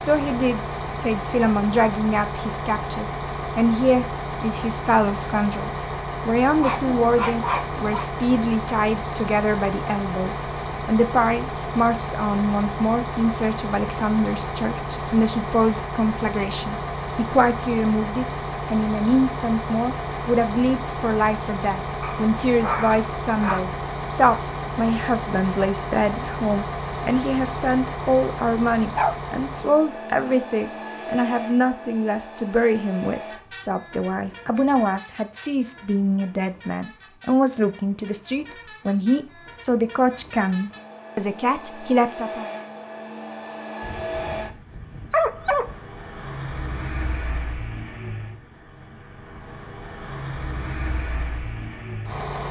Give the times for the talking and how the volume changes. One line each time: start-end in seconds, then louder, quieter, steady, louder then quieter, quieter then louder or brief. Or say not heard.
0.0-42.5 steady.